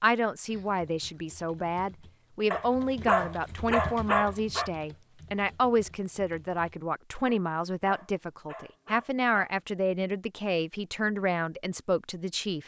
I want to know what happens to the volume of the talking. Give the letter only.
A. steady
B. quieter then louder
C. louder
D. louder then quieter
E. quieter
A.